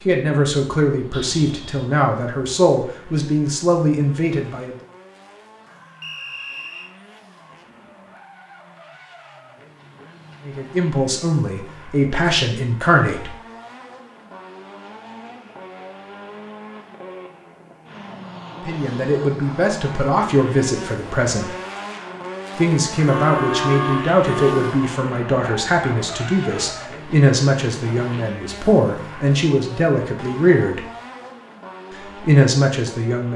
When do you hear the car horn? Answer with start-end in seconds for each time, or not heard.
1.1-1.9, 23.1-24.8.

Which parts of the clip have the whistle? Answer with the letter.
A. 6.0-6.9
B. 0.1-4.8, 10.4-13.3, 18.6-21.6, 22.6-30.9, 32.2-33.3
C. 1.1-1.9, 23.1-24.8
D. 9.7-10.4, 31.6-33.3
A.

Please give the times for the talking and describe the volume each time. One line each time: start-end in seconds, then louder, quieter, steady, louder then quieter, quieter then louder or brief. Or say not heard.
0.1-4.8 steady
10.4-13.3 brief
18.6-21.6 brief
22.6-30.9 steady
32.2-33.3 brief.